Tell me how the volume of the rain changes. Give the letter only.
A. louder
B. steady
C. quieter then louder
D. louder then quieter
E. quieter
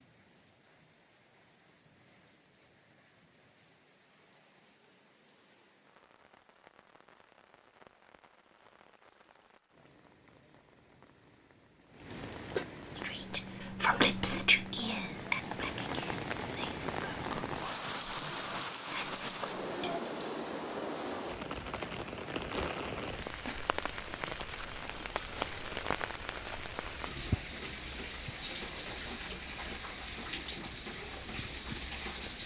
A.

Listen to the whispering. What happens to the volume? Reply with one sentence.
The volume of the whispering goes down, then up.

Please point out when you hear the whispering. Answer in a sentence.
The whispering can be heard from 12.9 to 20.0 s.